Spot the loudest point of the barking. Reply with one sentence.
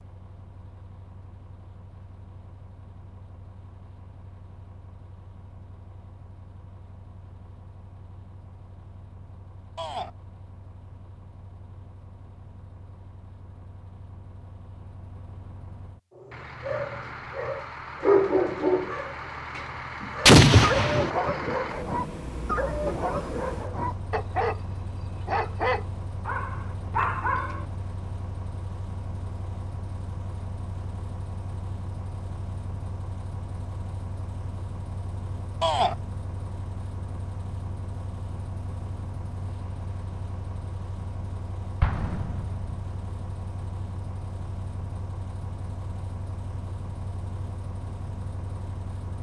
The volume of the barking peaks at 18 seconds.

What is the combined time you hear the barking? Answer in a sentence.
The barking can be heard for 11 seconds in total.